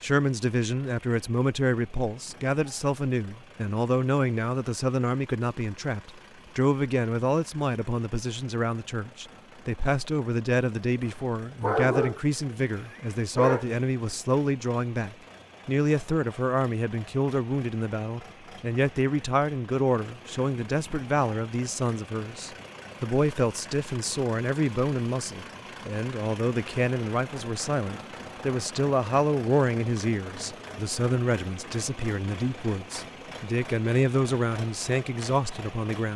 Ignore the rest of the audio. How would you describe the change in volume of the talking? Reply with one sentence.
The loudness of the talking stays about the same.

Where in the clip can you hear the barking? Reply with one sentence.
The barking can be heard from 11.1 to 13.8 s.